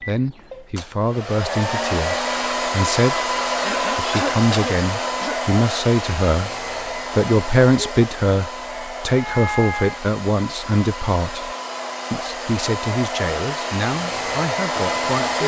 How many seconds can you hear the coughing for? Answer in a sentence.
The coughing can be heard for 2 seconds in total.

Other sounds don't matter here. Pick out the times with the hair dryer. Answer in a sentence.
The hair dryer can be heard from 0.0 to 15.4 s.